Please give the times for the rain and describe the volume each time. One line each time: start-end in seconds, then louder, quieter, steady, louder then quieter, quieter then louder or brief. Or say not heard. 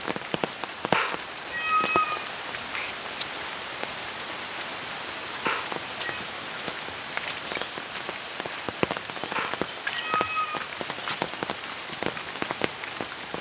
0.0-13.3 steady.